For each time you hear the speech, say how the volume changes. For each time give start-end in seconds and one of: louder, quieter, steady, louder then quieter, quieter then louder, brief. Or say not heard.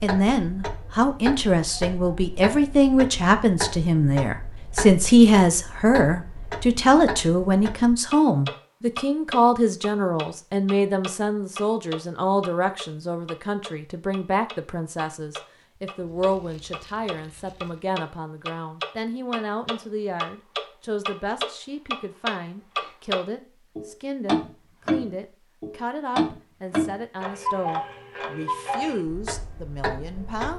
0.0-30.5 quieter.